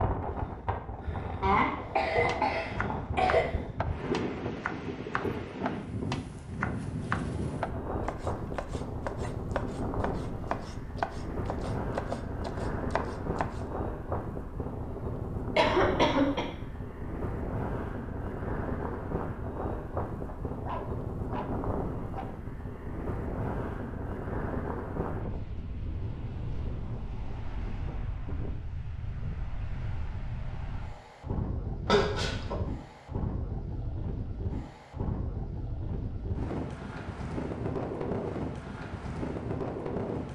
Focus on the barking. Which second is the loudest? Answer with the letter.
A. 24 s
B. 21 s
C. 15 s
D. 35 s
B.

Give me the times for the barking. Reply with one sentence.
The barking can be heard from 20.2 to 22.2 s.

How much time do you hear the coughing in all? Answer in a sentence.
You can hear the coughing for 4 seconds altogether.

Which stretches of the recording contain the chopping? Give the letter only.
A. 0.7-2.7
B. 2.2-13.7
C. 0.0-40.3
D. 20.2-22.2
B.